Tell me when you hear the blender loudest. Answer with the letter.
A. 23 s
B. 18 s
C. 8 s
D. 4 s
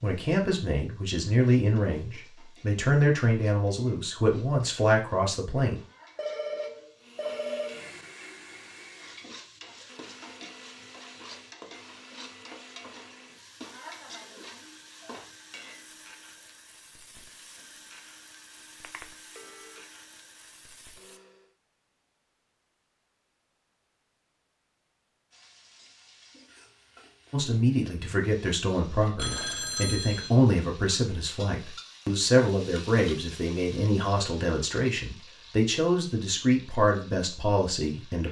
C.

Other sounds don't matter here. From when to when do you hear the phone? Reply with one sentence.
You can hear the phone from 6.2 to 7.9 s, from 18.8 to 19.8 s and from 29.1 to 30.3 s.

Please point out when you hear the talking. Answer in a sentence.
You can hear the talking from 0.0 to 5.8 s and from 27.3 to 38.2 s.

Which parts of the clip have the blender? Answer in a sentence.
You can hear the blender from 7.0 to 21.6 s.